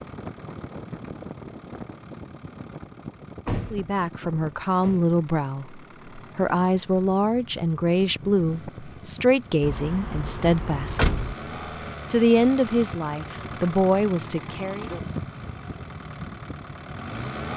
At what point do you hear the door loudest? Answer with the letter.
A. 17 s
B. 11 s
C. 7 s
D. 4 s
B.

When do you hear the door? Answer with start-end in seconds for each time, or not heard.
3.5-5.2, 9.6-11.3.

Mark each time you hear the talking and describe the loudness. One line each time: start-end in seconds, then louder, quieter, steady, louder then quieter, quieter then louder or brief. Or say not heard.
3.7-11.2 steady
12.1-14.9 brief.